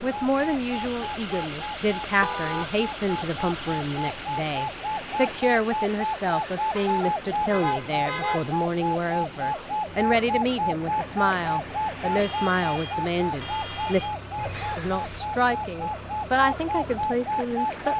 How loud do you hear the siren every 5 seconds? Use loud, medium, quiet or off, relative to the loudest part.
medium, loud, loud, loud.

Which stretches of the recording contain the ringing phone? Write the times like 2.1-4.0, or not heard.
14.3-15.3.